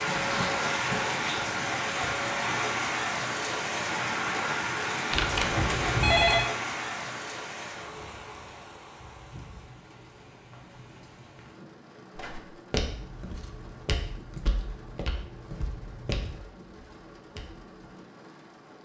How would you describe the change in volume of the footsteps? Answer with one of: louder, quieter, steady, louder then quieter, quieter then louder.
quieter.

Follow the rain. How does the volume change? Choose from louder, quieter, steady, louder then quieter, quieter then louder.
quieter.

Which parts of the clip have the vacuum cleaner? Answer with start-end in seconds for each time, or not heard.
0.0-2.5.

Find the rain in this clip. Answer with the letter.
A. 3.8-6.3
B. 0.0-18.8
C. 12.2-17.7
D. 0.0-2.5
B.